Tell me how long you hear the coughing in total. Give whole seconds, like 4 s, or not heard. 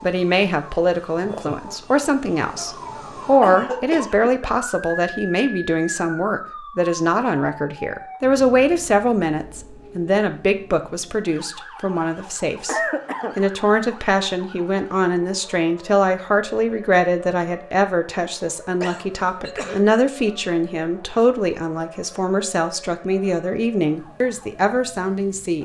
3 s.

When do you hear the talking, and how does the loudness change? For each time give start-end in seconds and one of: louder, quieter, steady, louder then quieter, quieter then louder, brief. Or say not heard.
0.0-25.6 steady.